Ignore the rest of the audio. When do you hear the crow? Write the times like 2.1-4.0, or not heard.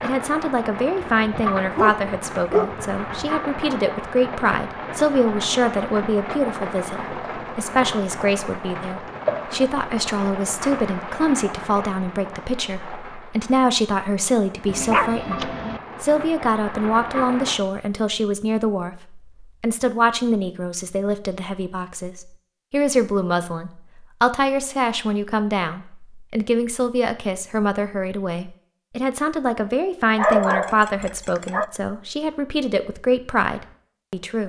not heard.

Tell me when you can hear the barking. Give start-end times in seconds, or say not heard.
1.0-3.3, 14.7-15.8, 30.1-31.6.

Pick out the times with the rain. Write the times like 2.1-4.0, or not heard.
0.0-17.6.